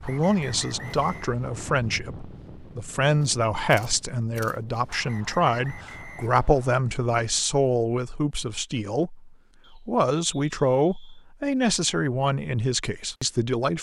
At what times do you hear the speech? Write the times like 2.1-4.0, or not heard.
0.0-13.7.